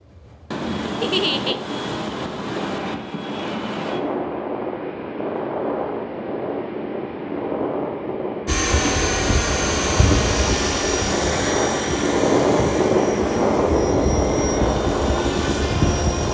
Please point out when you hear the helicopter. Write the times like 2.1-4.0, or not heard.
8.4-16.2.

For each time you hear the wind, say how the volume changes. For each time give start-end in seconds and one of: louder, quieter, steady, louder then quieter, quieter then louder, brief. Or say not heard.
0.0-16.2 louder.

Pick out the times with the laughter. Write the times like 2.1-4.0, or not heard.
1.0-1.6.